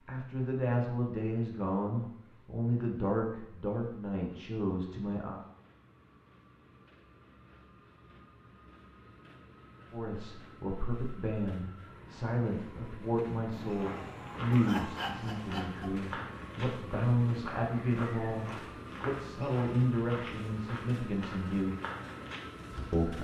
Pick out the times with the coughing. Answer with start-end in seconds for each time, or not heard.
13.5-15.9.